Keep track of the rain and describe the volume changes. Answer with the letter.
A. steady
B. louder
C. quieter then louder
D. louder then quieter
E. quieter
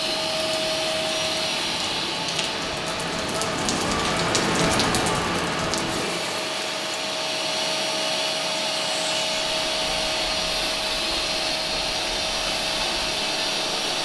D.